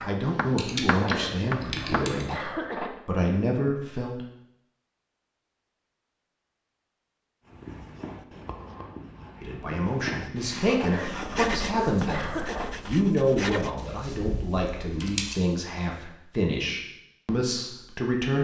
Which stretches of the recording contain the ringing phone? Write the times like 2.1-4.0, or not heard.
not heard.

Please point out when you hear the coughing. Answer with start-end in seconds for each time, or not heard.
0.8-2.9, 10.7-12.7.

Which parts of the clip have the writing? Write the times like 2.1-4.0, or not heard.
0.0-2.9, 7.5-13.8.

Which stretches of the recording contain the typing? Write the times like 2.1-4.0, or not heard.
0.2-2.2, 13.8-15.4.